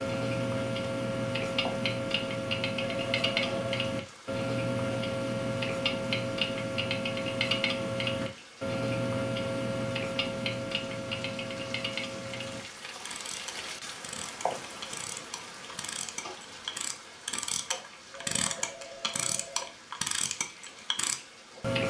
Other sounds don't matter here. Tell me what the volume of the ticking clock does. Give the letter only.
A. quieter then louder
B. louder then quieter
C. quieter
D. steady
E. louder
A.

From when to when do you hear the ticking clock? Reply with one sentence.
The ticking clock can be heard from 0.0 to 21.8 s.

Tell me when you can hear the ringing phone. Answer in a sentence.
You can hear the ringing phone from 2.8 to 3.6 s and from 18.1 to 19.7 s.